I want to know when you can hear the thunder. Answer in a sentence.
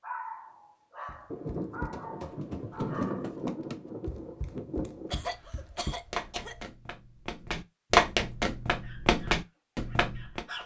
The thunder can be heard from 1.3 to 5.2 s.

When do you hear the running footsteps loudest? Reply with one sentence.
The volume of the running footsteps peaks at 8 seconds.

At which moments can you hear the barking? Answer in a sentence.
The barking can be heard from 0.0 to 3.4 s and from 8.8 to 10.6 s.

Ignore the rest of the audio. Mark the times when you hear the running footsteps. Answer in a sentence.
The running footsteps can be heard from 1.1 to 10.6 s.